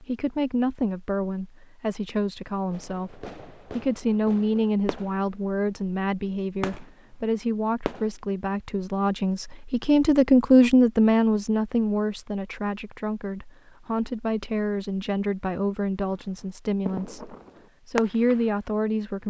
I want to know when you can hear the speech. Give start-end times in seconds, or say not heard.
0.0-19.2.